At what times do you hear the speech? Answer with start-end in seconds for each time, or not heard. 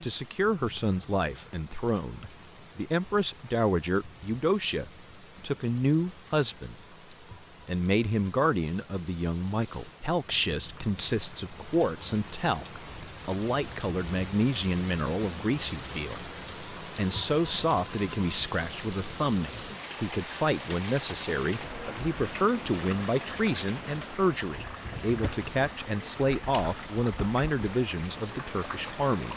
0.0-6.8, 7.7-29.3.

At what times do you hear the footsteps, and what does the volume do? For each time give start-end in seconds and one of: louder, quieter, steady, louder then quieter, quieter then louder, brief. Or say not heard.
not heard.